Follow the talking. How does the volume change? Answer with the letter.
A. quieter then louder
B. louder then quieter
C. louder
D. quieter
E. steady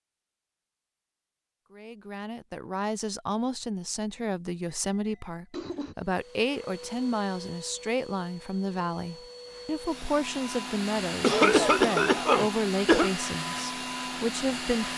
E.